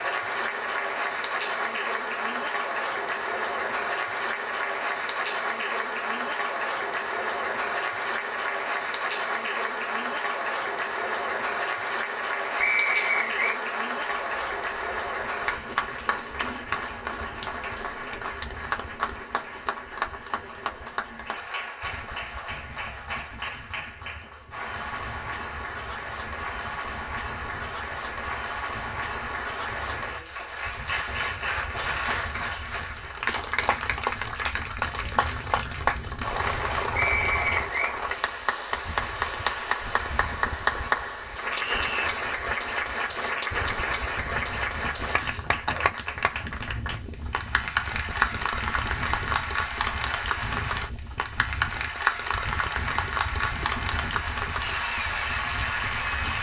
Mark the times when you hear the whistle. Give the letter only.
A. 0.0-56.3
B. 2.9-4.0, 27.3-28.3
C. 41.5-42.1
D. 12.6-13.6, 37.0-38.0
D.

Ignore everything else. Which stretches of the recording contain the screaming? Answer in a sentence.
You can hear the screaming from 41.5 to 42.1 s.